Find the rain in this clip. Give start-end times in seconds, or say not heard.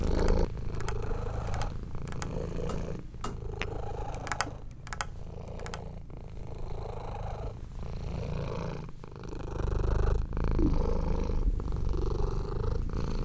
not heard.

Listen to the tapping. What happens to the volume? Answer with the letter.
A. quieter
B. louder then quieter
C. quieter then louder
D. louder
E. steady
B.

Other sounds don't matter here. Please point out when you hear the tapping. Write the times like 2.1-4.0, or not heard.
0.1-6.0.